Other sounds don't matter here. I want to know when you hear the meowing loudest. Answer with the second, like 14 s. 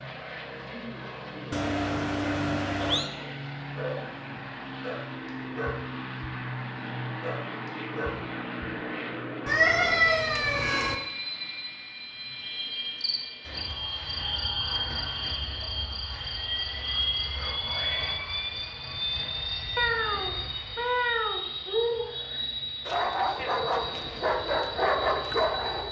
10 s.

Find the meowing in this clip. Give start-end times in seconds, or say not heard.
1.5-3.1, 9.4-10.9, 19.8-21.4.